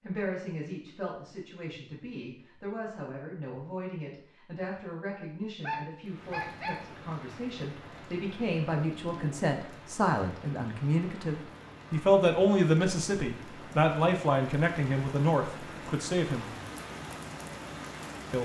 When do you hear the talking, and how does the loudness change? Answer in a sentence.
You can hear the talking from 0.0 to 16.4 s, getting louder.